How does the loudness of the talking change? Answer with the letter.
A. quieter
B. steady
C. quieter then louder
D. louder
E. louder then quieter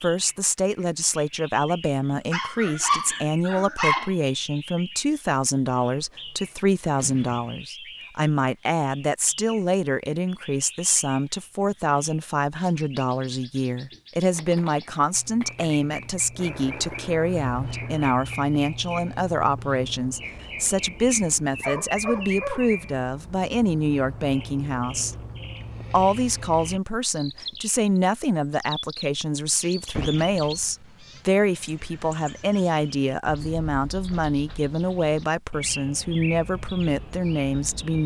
B.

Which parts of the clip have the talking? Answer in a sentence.
The talking can be heard from 0.0 to 25.1 s and from 25.9 to 38.0 s.